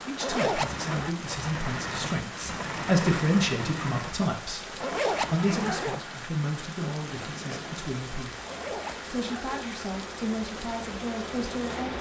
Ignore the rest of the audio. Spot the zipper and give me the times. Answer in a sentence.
The zipper can be heard from 0.1 to 1.1 s, from 4.7 to 6.0 s and from 8.3 to 9.7 s.